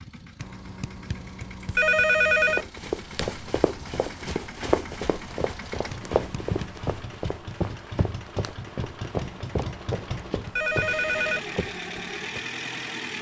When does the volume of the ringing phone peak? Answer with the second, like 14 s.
2 s.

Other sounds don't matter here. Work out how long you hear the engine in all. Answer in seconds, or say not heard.
13 s.